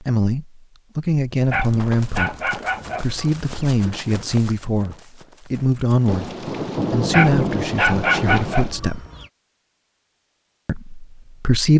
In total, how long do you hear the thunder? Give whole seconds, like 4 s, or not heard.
3 s.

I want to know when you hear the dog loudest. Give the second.
8 s.